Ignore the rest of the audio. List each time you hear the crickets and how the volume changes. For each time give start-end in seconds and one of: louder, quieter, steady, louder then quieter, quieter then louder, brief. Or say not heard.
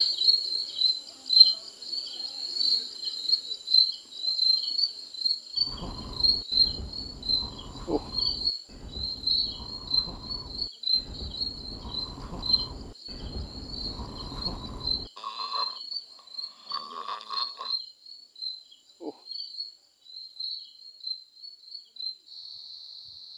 0.0-23.3 quieter.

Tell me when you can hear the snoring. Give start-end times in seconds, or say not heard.
5.5-17.8.